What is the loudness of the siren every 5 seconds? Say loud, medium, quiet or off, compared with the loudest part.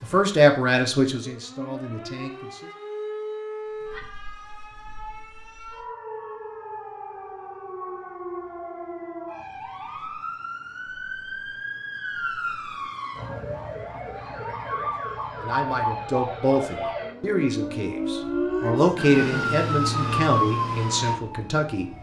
medium, medium, medium, loud, loud.